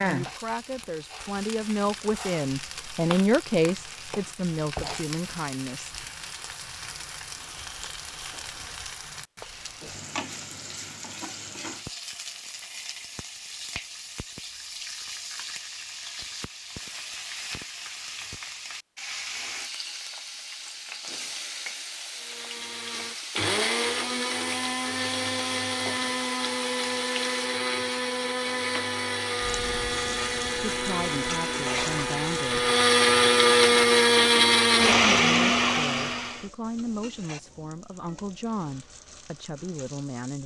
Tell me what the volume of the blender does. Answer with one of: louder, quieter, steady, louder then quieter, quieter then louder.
louder.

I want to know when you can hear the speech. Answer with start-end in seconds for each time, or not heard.
0.0-6.0, 30.7-32.7, 35.0-40.4.